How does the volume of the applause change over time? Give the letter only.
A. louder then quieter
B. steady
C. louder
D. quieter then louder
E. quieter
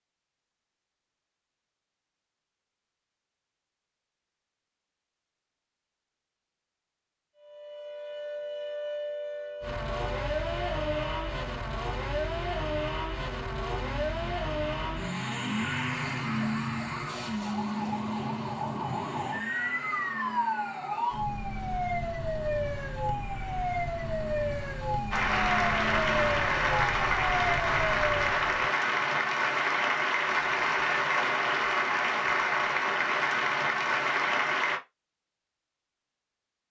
B.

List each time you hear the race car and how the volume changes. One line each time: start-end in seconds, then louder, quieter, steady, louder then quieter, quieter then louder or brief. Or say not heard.
9.6-26.4 quieter.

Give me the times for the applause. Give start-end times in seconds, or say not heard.
25.1-34.8.